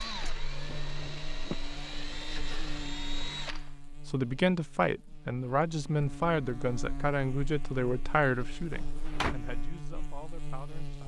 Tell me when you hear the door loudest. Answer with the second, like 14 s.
9 s.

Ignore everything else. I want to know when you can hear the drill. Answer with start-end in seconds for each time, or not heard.
0.0-3.7.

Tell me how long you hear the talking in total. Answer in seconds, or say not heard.
7 s.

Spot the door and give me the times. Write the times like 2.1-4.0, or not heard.
0.2-1.6, 8.7-9.3.